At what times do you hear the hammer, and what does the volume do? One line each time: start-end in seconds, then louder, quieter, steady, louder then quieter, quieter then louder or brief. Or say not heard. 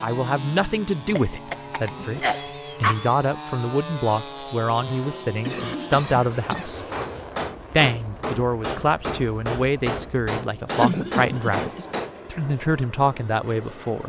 6.9-12.2 steady.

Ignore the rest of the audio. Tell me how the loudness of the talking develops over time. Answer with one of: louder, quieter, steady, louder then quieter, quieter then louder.
steady.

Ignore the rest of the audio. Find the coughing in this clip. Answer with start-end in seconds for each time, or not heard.
1.1-3.1, 4.8-7.2, 10.7-12.0.